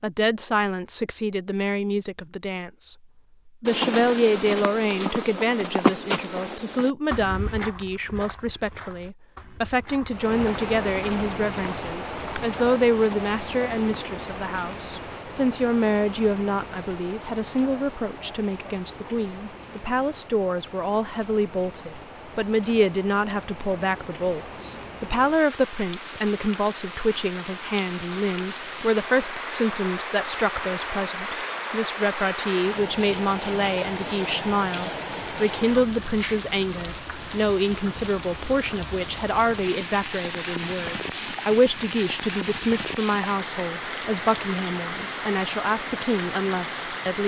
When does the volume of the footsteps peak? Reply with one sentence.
The loudest moment of the footsteps is at 6 seconds.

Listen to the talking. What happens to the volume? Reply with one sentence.
The loudness of the talking stays about the same.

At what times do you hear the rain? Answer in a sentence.
The rain can be heard from 10.1 to 47.2 s.